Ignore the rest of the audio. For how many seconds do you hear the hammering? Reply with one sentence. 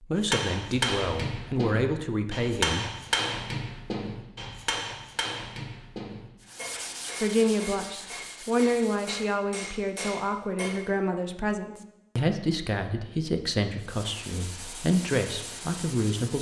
You can hear the hammering for 11 seconds altogether.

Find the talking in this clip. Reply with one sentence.
You can hear the talking from 0.0 to 2.9 s and from 7.2 to 16.3 s.